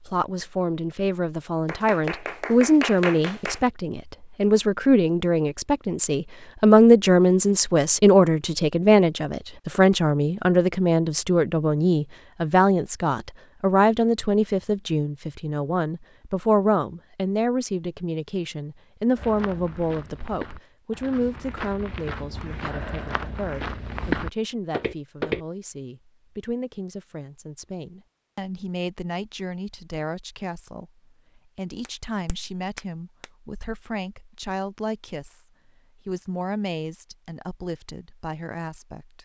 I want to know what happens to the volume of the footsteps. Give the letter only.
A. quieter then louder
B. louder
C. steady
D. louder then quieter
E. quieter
B.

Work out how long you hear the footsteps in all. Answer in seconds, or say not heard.
6 s.